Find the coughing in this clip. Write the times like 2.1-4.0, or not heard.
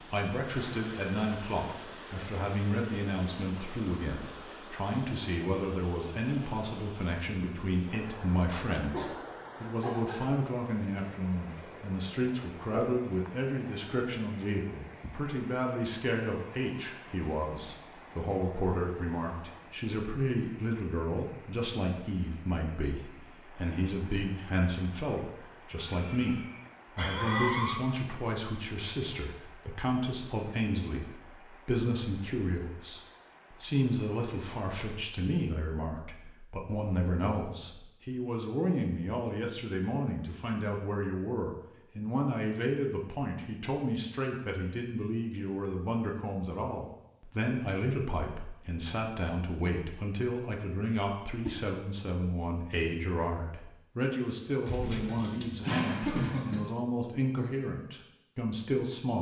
8.9-10.2, 25.9-27.8, 54.6-56.6.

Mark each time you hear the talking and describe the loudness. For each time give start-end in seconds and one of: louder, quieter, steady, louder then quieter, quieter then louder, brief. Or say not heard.
0.0-59.1 steady.